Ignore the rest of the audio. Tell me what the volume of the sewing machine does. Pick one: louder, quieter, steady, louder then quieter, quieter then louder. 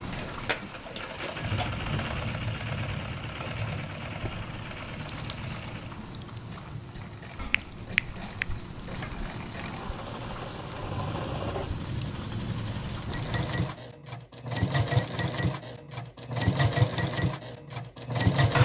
quieter then louder.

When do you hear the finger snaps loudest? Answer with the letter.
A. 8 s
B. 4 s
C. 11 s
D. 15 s
A.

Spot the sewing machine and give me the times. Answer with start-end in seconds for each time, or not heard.
0.0-18.6.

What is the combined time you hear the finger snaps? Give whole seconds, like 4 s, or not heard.
2 s.